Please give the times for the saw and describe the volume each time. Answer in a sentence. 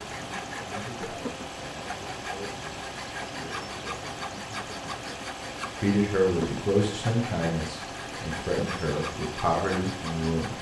The saw can be heard from 0.0 to 10.5 s, at a steady volume.